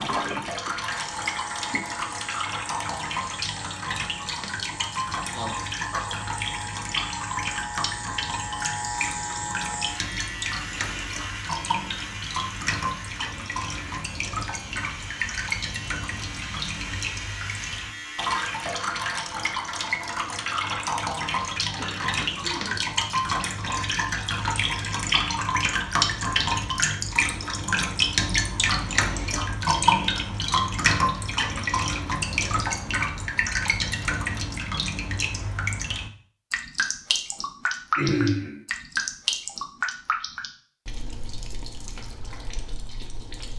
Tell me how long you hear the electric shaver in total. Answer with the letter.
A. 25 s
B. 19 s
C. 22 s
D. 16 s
B.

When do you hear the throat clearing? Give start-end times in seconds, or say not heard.
5.3-6.2, 21.8-22.8, 38.0-38.6.